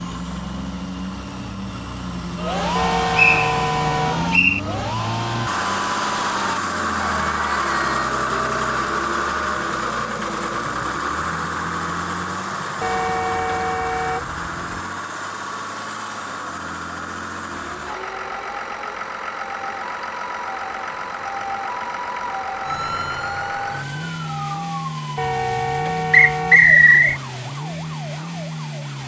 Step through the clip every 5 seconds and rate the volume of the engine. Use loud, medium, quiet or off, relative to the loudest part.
medium, loud, loud, medium, medium, medium.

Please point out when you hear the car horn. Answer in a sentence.
You can hear the car horn from 2.8 to 4.2 s, from 12.8 to 14.8 s and from 25.1 to 27.2 s.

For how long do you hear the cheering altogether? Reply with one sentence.
You can hear the cheering for 6 seconds altogether.